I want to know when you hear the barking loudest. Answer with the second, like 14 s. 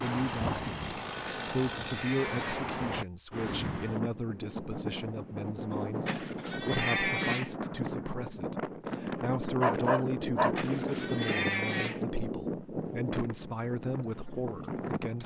10 s.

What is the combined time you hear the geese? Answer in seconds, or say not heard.
not heard.